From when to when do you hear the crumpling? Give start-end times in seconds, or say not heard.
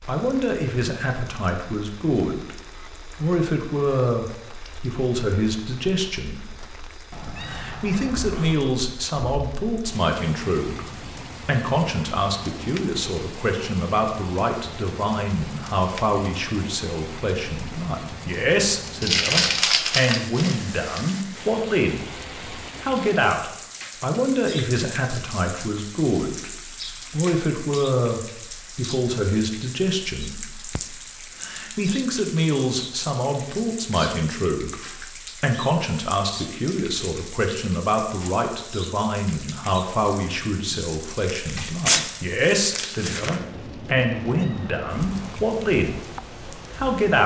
19.0-21.0, 41.5-43.4.